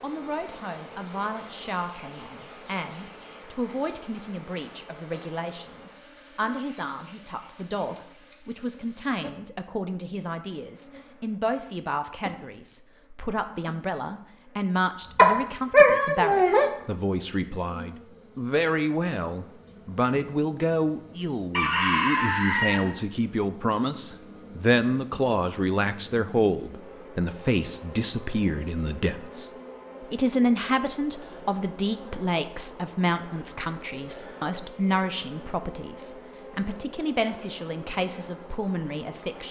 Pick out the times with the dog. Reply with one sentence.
You can hear the dog from 15.2 to 16.7 s.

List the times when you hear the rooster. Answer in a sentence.
The rooster can be heard from 21.5 to 23.3 s.